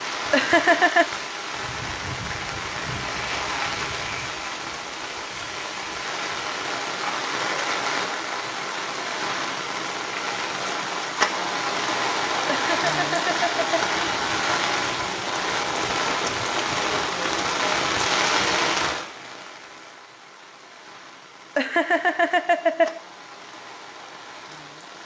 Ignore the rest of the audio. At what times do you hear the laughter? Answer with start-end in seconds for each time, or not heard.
0.3-1.1, 12.5-13.9, 21.6-23.0.